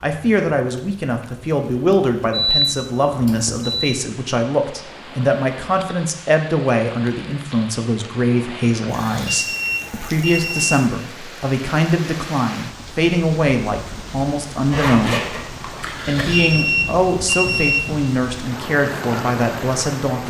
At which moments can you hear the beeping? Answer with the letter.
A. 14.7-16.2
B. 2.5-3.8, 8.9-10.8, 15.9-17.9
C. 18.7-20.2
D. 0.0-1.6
B.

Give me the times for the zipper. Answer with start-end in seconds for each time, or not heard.
14.7-16.2.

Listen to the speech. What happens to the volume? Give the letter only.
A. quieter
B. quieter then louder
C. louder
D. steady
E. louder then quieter
D.